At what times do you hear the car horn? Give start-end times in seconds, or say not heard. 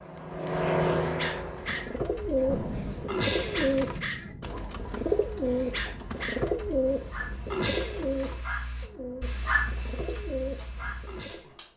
not heard.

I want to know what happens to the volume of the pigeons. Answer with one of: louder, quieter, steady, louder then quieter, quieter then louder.
quieter.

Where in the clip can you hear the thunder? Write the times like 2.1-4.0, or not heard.
2.5-4.5.